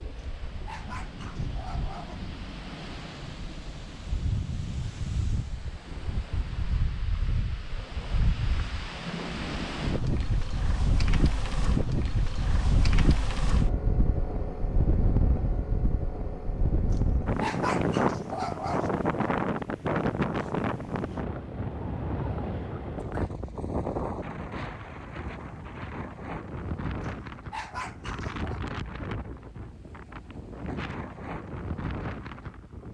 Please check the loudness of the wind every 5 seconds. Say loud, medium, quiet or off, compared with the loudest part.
medium, medium, loud, loud, loud, medium, medium.